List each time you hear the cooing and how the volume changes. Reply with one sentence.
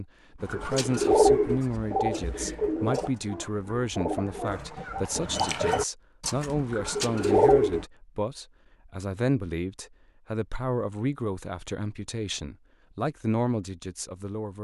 The cooing can be heard from 0.5 to 7.8 s, getting quieter then louder.